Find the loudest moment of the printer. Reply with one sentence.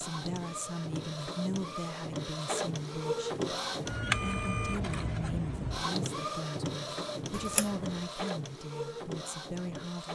The volume of the printer peaks at 4 seconds.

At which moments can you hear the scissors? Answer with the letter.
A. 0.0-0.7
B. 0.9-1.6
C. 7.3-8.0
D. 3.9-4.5
C.